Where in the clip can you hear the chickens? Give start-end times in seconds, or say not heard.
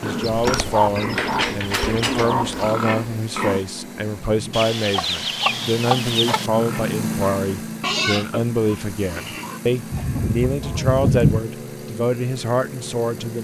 0.2-2.7, 4.5-6.5, 9.9-11.4.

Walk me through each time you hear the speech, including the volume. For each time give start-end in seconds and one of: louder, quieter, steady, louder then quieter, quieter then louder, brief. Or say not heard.
0.0-13.3 steady.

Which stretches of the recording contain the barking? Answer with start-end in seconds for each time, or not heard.
not heard.